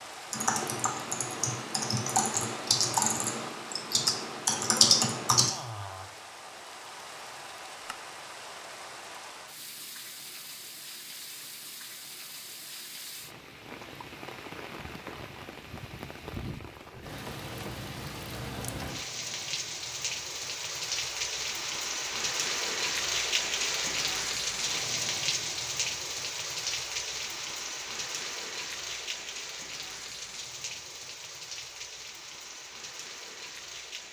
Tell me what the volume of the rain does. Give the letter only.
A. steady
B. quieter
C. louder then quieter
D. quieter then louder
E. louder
C.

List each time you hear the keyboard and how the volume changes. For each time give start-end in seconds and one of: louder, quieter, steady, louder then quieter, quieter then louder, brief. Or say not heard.
0.3-5.5 louder.